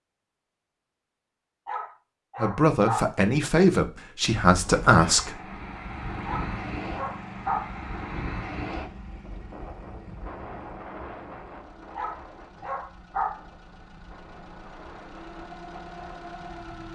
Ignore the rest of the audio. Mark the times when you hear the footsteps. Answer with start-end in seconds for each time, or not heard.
not heard.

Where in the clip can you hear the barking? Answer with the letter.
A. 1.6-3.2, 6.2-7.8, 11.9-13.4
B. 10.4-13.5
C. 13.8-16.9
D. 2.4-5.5
A.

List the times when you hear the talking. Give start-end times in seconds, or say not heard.
2.4-5.5.